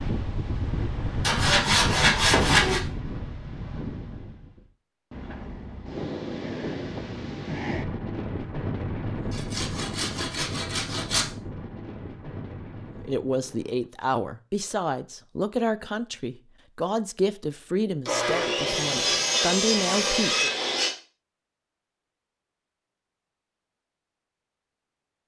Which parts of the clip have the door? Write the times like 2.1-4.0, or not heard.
not heard.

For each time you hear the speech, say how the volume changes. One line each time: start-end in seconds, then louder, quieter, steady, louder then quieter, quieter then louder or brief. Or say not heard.
13.0-20.5 steady.